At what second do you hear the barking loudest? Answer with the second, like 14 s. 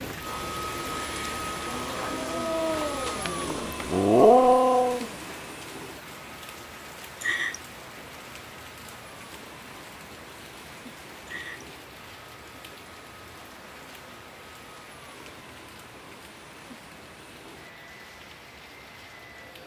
4 s.